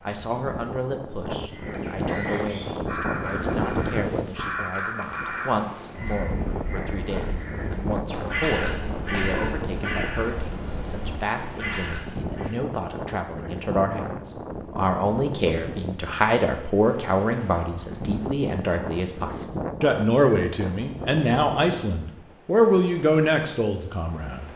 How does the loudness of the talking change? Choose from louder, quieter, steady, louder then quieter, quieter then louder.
louder.